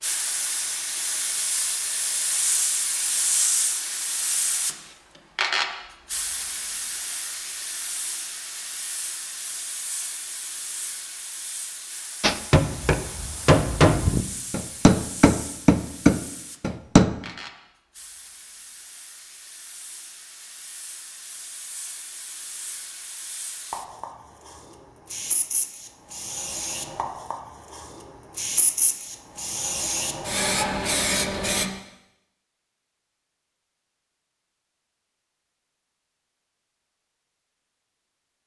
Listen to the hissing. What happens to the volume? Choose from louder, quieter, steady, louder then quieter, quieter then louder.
quieter then louder.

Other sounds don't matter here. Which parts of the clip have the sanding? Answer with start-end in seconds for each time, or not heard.
not heard.